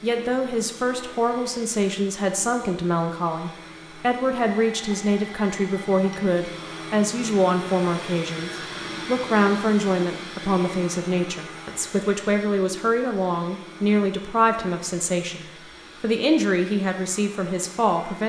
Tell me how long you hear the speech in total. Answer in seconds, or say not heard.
18 s.